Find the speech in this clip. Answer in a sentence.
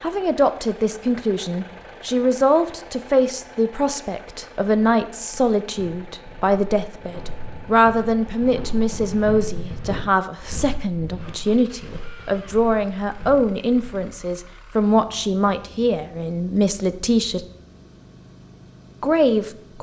You can hear the speech from 0.0 to 17.4 s and from 19.0 to 19.7 s.